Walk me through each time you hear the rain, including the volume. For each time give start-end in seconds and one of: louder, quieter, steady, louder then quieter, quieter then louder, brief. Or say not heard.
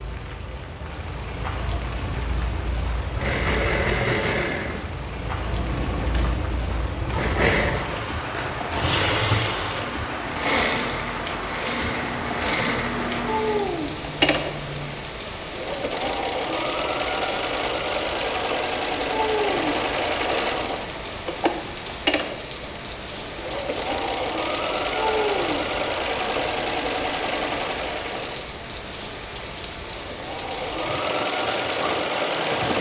0.0-32.7 steady.